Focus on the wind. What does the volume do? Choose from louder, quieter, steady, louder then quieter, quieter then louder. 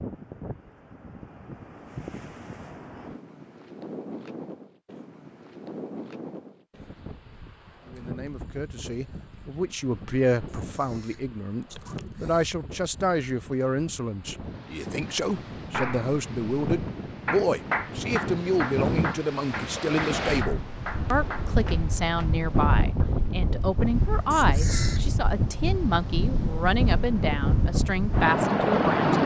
louder.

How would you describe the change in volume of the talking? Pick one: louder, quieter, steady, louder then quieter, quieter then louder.
steady.